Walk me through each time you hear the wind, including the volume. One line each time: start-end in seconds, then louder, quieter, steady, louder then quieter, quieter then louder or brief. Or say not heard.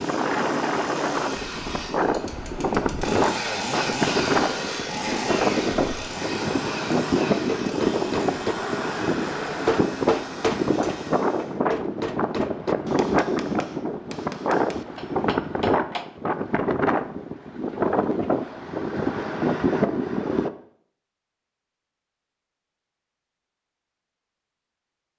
0.0-20.5 steady.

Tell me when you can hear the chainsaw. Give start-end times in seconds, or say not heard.
0.0-11.6.